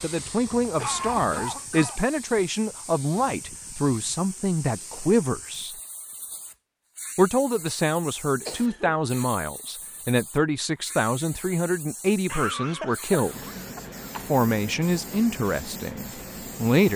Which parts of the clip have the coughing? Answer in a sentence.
You can hear the coughing from 0.5 to 2.4 s, from 8.4 to 9.1 s and from 12.2 to 14.3 s.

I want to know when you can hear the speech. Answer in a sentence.
The speech can be heard from 0.0 to 5.8 s, from 7.2 to 13.4 s and from 14.2 to 16.9 s.